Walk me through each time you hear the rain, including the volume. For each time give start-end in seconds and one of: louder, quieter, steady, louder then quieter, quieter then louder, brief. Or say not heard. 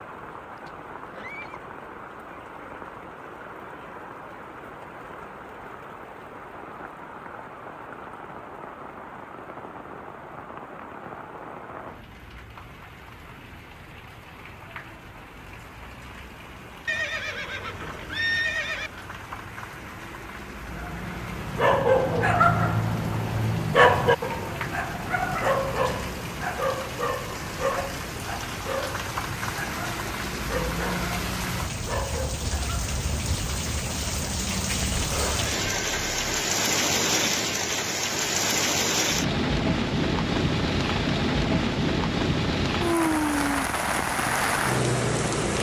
0.0-45.5 louder.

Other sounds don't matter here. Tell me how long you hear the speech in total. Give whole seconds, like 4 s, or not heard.
not heard.